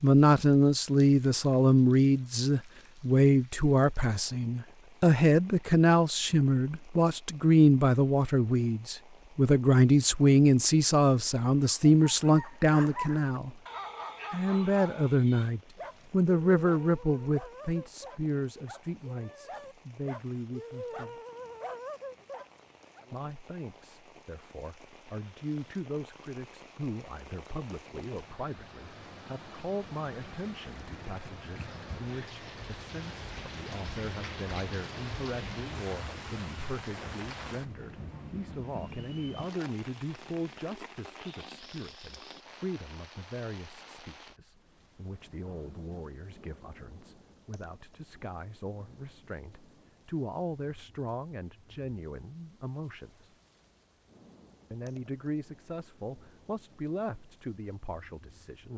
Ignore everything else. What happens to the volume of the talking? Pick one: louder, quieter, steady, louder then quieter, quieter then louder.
quieter.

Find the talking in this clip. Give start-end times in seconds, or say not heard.
0.0-13.5, 14.3-21.1, 23.1-53.3, 54.7-58.7.